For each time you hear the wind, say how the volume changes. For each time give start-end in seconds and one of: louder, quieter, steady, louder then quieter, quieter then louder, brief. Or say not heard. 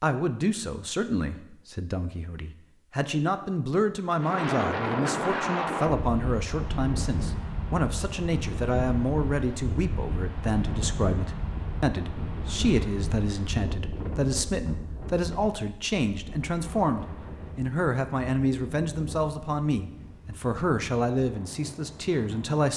4.2-22.7 quieter.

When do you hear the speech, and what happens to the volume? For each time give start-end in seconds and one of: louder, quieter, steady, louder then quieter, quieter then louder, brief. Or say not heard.
0.0-22.7 steady.